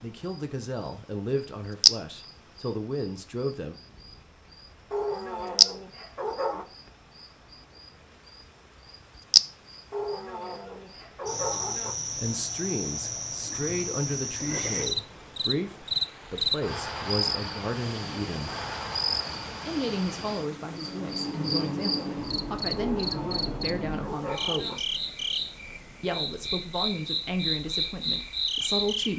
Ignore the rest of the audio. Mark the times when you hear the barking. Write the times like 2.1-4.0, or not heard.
4.9-6.7, 9.9-11.9, 22.8-24.8.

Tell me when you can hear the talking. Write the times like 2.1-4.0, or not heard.
0.0-3.8, 12.2-18.6, 19.6-24.9, 26.0-29.1.